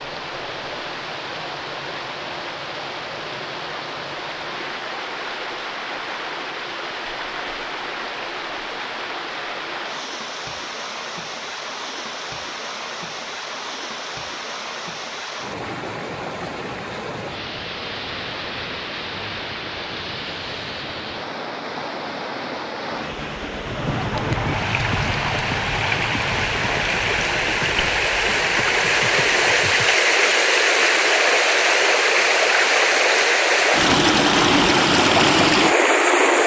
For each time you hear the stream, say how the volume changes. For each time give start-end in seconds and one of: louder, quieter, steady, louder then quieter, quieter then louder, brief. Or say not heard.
0.0-36.4 louder.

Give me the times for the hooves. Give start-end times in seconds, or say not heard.
23.6-29.9.